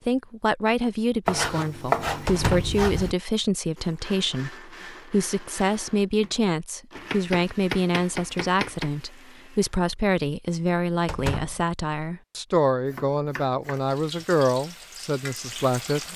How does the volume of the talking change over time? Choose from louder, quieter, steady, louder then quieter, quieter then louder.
steady.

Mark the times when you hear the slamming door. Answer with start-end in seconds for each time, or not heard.
2.2-2.8, 11.1-11.7.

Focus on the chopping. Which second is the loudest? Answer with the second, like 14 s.
2 s.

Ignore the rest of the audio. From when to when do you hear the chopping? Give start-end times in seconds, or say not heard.
1.2-3.1, 7.0-8.9, 12.8-14.0.